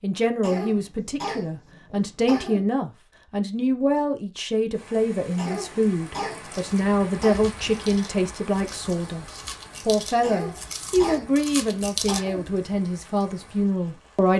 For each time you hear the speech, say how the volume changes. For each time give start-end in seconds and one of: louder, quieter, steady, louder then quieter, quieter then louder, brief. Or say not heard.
0.0-14.3 steady.